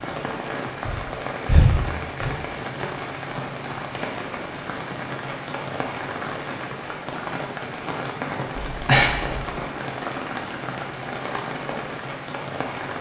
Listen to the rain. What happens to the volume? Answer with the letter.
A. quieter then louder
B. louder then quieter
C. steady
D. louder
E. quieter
C.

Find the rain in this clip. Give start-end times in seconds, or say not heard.
0.0-12.9.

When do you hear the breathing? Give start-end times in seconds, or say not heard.
0.8-2.4, 8.7-9.6.